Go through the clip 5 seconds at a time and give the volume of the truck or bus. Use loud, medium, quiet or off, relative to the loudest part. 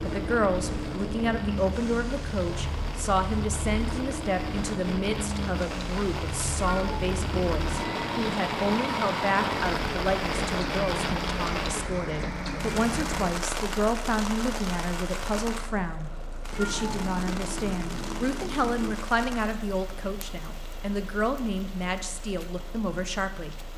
loud, loud, loud, quiet, quiet.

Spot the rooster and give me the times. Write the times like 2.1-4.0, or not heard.
not heard.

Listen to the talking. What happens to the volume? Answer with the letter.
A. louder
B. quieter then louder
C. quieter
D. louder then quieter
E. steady
E.